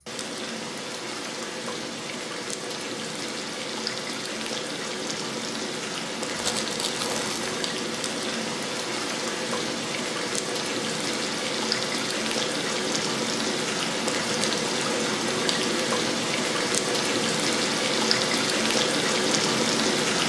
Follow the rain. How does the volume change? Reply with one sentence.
The loudness of the rain goes up.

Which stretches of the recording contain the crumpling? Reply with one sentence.
You can hear the crumpling from 6.3 to 7.7 s.